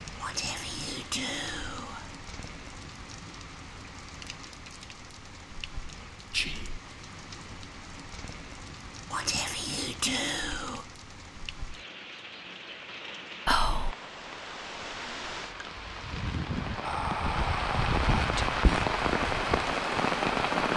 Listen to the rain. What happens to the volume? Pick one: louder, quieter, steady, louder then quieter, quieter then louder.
louder.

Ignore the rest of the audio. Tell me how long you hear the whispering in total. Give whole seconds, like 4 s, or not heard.
7 s.